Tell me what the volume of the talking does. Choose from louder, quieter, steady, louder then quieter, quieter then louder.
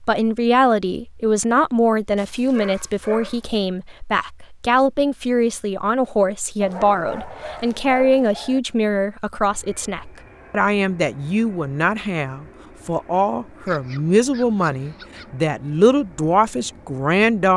steady.